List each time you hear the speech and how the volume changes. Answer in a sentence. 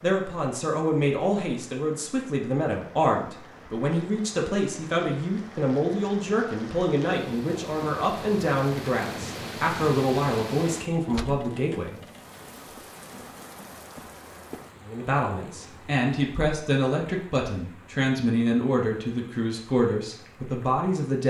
You can hear the speech from 0.0 to 12.0 s, at a steady volume; and from 14.8 to 21.2 s, at a steady volume.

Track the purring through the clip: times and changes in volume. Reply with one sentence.
The purring can't be heard in this clip.